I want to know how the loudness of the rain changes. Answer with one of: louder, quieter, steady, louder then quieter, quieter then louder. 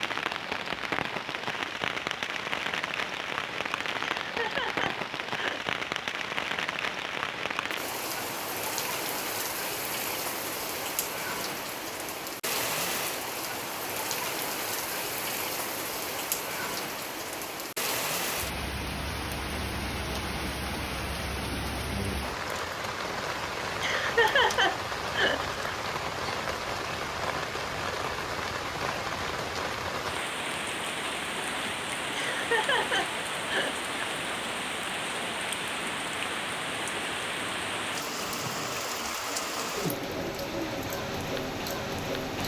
steady.